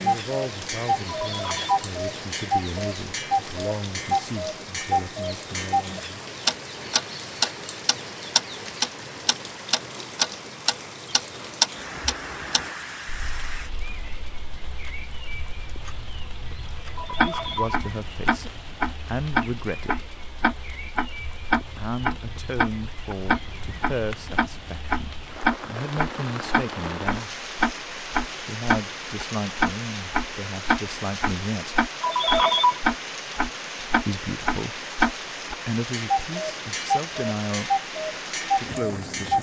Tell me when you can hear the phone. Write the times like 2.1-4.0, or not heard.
1.1-1.9, 16.9-17.8, 32.0-32.8.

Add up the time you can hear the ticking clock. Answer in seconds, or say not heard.
39 s.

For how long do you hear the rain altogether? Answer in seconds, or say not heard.
39 s.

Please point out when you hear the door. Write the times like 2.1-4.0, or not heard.
not heard.